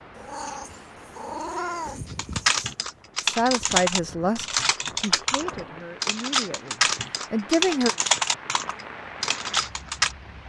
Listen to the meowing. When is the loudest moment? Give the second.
2 s.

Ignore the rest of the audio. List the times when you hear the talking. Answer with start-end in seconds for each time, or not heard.
3.2-7.9.